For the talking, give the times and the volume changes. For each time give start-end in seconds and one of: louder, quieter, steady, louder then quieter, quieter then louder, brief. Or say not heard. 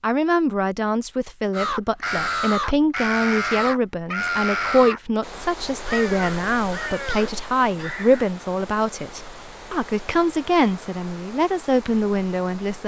0.0-12.8 steady.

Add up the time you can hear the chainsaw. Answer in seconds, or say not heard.
not heard.